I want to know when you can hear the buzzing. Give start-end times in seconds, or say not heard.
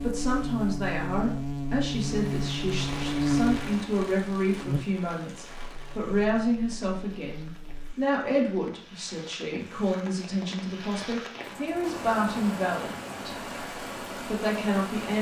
0.0-8.0.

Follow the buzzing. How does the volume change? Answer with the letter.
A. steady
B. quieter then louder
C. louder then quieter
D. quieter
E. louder
D.